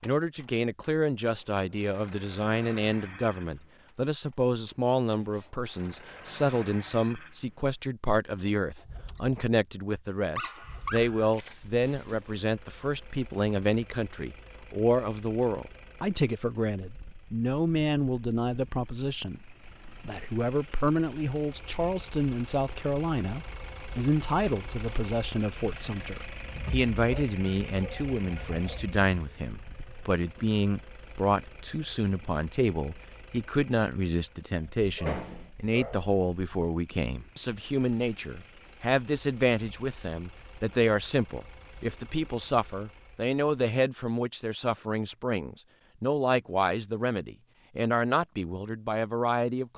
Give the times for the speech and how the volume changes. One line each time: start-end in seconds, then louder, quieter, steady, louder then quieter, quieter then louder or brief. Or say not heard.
0.0-49.7 steady.